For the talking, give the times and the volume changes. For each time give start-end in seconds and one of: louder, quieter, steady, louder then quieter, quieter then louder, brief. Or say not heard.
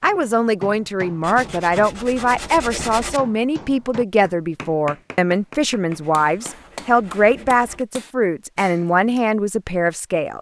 0.0-10.3 steady.